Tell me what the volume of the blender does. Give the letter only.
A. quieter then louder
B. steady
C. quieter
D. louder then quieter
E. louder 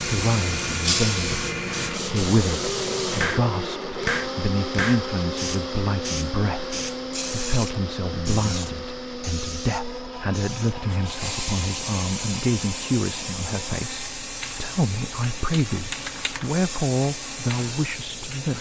C.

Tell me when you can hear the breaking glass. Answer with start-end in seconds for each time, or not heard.
0.8-1.4.